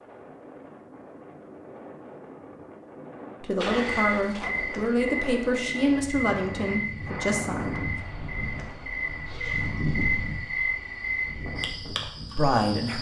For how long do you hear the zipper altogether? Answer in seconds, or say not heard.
2 s.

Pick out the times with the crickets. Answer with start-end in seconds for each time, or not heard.
3.6-12.9.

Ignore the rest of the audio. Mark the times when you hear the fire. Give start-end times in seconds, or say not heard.
not heard.